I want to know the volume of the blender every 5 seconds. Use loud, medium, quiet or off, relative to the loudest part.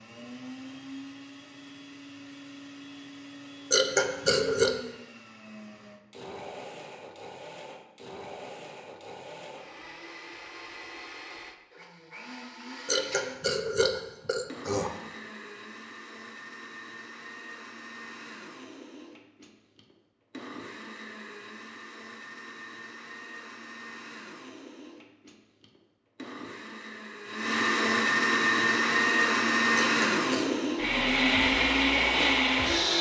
quiet, quiet, quiet, quiet, quiet, loud, loud.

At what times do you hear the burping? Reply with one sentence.
The burping can be heard from 3.7 to 4.8 s, from 12.8 to 14.9 s and from 29.8 to 30.7 s.